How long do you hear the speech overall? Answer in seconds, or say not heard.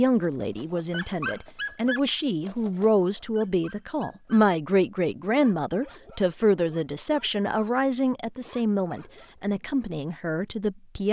11 s.